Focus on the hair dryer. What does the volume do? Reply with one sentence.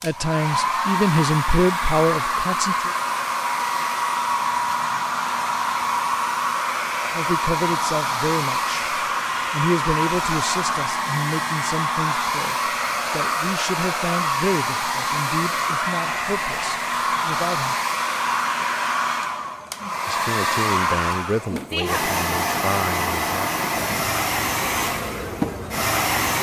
The loudness of the hair dryer stays about the same.